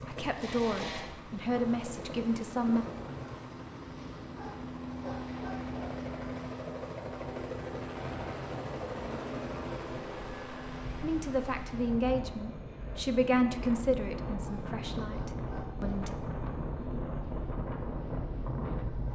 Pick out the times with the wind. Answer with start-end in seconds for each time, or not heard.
0.0-19.1.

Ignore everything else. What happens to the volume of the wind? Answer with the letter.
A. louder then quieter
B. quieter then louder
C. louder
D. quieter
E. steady
C.